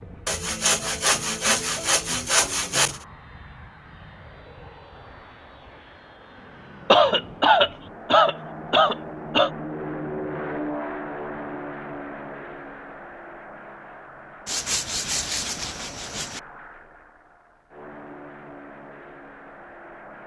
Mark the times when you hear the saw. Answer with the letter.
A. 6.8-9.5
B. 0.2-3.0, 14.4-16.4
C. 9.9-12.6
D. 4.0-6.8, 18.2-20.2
B.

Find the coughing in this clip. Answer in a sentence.
You can hear the coughing from 6.8 to 9.5 s.